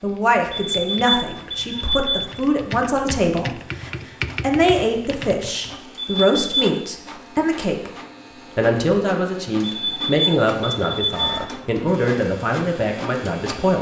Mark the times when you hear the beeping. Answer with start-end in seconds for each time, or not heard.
0.5-2.2, 6.0-6.8, 9.6-11.4.